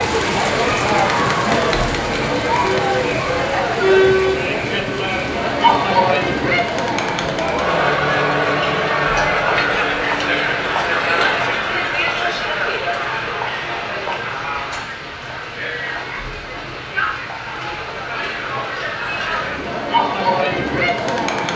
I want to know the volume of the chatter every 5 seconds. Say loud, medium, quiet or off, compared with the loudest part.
loud, loud, loud, medium, loud.